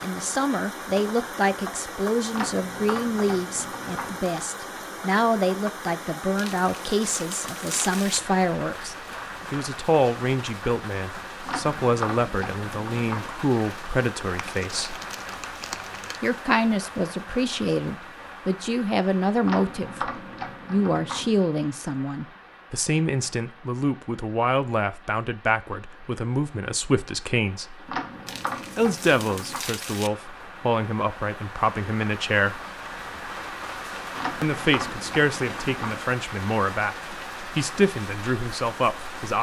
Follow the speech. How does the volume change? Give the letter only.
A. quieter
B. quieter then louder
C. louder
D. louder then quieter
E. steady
E.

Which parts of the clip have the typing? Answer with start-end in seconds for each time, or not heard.
2.3-4.2, 11.4-13.3, 19.4-21.4, 27.9-29.6, 34.1-36.0.